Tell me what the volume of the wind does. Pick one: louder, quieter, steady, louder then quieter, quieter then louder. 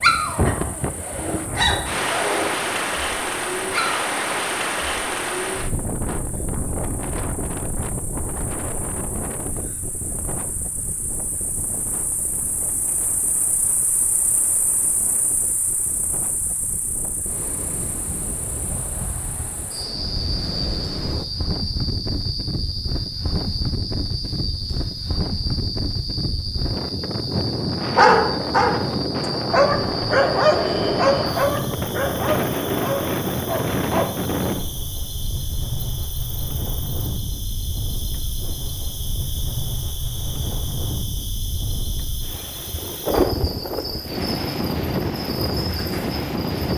quieter then louder.